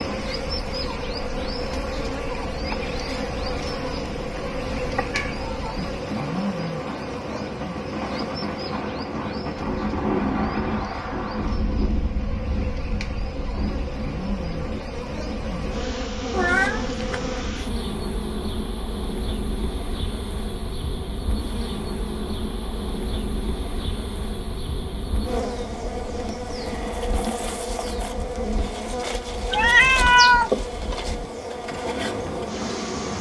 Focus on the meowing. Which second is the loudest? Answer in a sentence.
The volume of the meowing peaks at 30 seconds.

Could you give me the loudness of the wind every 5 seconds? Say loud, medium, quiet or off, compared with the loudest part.
medium, loud, loud, medium, medium, medium, medium.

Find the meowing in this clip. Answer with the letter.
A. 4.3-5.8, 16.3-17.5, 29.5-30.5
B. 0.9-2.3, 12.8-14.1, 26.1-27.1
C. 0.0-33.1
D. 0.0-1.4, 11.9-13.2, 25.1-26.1
A.